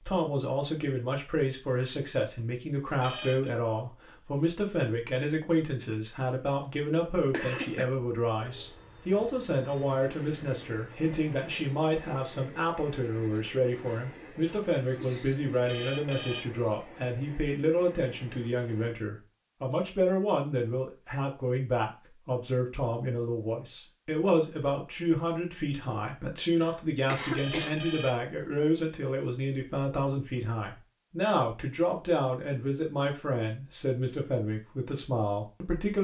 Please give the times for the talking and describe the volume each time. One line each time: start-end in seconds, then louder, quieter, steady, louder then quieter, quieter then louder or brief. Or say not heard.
0.0-35.9 steady.